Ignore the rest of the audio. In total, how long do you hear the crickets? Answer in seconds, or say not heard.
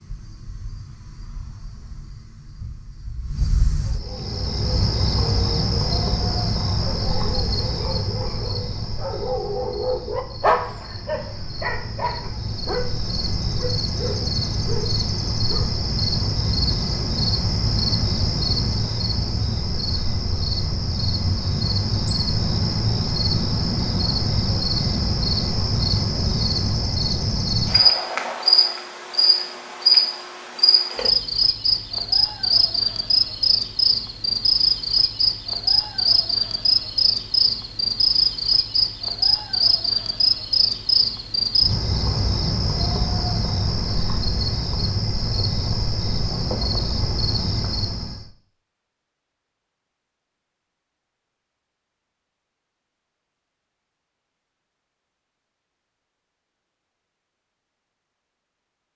48 s.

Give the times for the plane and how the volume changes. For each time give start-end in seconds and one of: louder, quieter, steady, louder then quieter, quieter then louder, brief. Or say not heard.
not heard.